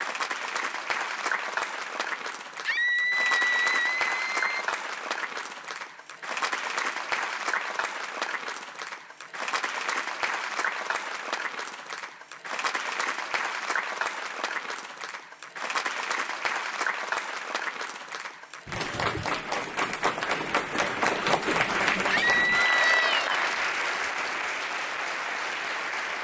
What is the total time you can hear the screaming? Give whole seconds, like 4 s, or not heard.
3 s.